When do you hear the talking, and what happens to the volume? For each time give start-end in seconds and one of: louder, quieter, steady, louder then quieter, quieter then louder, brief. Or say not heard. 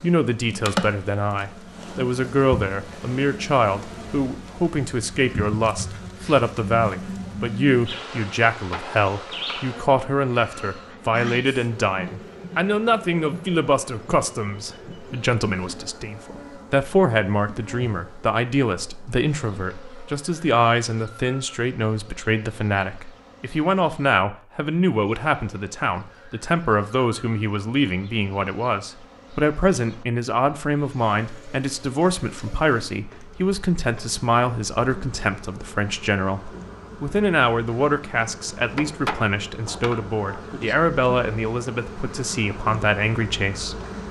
0.0-43.8 steady.